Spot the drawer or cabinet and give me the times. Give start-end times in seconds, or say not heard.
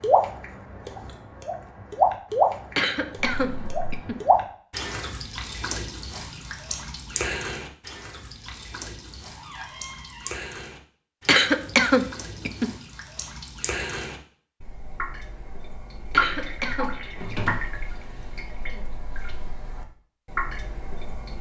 3.3-3.9, 9.3-10.3, 17.1-17.6.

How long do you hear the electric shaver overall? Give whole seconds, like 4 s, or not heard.
not heard.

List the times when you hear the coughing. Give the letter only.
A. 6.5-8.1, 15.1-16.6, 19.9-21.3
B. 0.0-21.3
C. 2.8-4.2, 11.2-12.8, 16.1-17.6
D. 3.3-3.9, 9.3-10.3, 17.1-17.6
C.